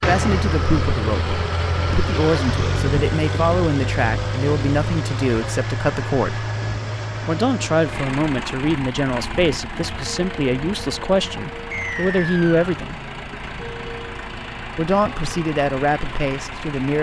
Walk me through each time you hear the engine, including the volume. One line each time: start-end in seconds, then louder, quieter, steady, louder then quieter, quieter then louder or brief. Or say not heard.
0.0-16.9 quieter.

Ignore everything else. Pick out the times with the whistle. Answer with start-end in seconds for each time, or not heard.
11.7-12.7.